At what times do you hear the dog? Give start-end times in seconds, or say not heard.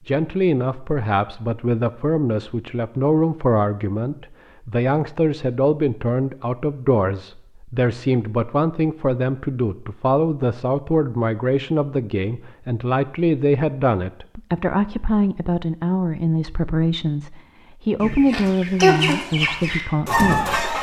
not heard.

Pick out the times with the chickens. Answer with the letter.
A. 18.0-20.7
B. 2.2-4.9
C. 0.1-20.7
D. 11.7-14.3
A.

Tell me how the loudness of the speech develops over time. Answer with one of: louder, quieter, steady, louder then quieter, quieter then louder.
steady.